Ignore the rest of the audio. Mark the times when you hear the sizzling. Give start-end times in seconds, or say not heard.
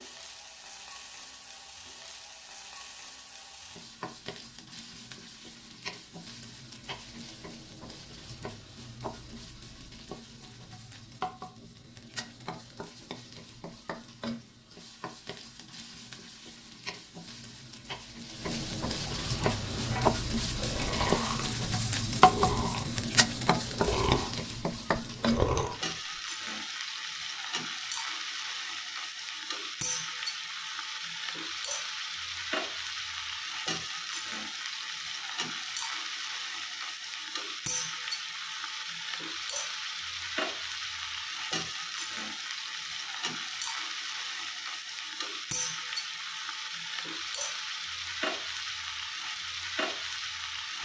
0.0-50.8.